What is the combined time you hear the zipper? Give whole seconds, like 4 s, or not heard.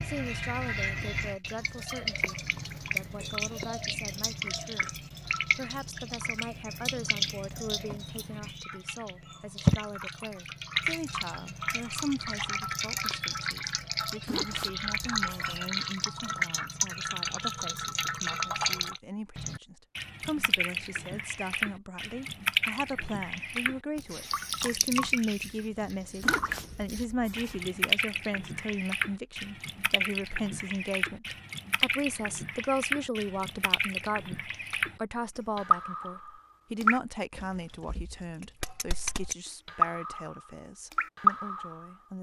3 s.